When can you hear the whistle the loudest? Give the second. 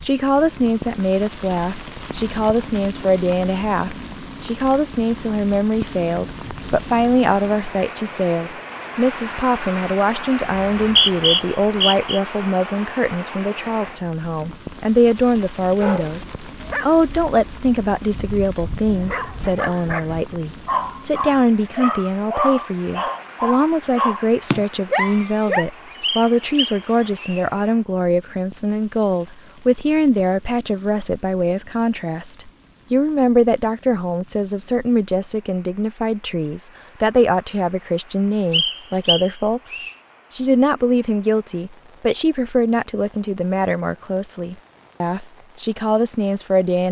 11 s.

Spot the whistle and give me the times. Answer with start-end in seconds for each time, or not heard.
10.6-12.2, 26.0-27.4, 38.5-40.0.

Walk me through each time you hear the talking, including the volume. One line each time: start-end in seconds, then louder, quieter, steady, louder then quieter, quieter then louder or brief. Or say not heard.
0.1-46.8 steady.